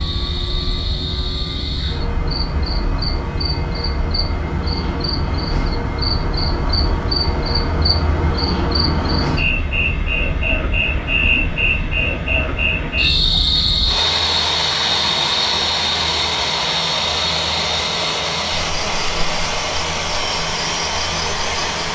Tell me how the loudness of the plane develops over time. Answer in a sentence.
The loudness of the plane goes up.